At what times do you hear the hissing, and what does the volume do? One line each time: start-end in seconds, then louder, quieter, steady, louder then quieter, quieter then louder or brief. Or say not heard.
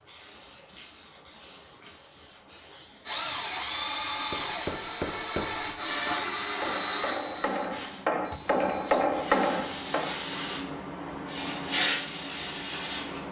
0.0-13.2 louder.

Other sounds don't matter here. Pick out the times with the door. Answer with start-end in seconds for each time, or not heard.
not heard.